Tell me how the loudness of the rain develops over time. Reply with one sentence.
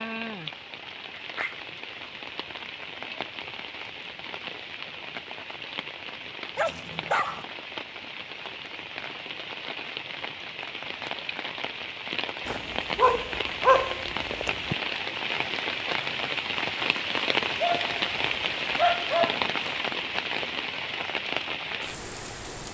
The volume of the rain goes up.